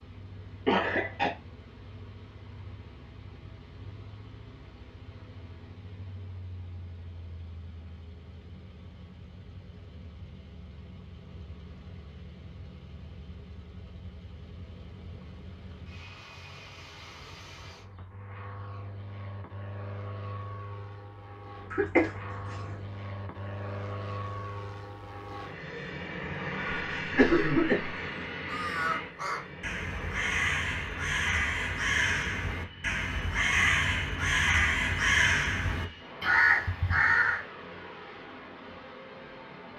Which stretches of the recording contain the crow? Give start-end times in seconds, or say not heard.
28.4-37.4.